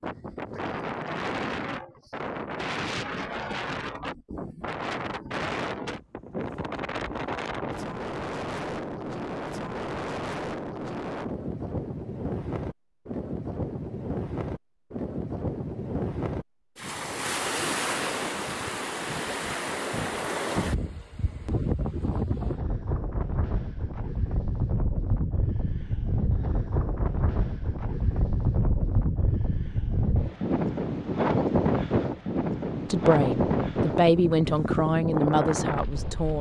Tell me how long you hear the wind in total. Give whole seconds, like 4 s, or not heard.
36 s.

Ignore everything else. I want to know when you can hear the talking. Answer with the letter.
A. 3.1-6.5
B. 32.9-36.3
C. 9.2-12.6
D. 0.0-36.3
B.